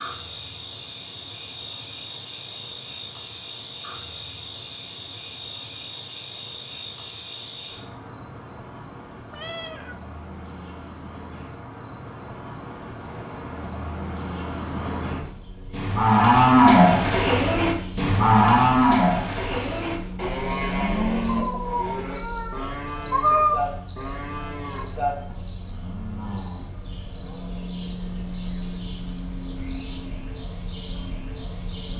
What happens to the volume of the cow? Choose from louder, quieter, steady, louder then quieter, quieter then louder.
quieter.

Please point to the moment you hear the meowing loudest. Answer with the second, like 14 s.
23 s.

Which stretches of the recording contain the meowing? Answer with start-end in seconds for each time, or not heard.
9.3-9.9, 21.2-23.6.